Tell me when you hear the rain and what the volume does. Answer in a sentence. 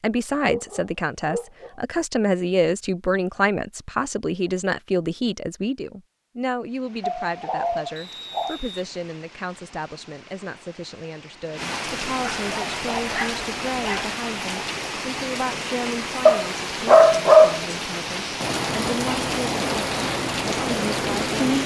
The rain can be heard from 6.7 to 21.6 s, getting louder.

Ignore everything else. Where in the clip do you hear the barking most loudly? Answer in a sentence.
The volume of the barking peaks at 17 seconds.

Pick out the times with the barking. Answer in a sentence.
You can hear the barking from 0.5 to 1.7 s, from 7.0 to 8.6 s, from 12.4 to 14.2 s and from 16.2 to 17.6 s.